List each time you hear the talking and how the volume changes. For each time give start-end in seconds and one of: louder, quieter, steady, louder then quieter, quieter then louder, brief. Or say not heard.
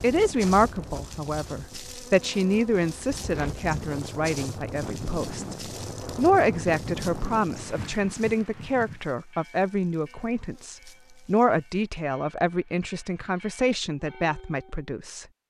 0.0-5.5 quieter
6.2-15.2 steady.